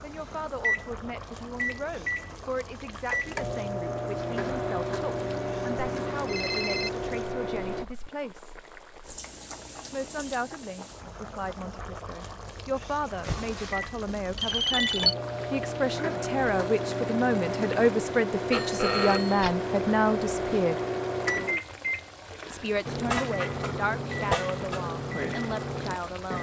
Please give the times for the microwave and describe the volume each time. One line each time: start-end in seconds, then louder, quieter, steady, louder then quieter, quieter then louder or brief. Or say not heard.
0.1-7.8 steady
13.7-26.3 steady.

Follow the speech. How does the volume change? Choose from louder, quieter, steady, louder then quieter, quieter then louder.
louder then quieter.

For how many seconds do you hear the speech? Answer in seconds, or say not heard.
23 s.